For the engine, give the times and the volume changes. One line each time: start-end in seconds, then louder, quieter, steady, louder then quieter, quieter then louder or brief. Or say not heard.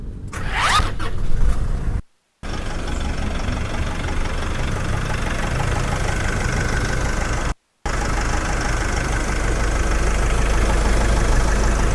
0.0-11.9 louder.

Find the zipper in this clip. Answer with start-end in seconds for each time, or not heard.
0.3-0.9.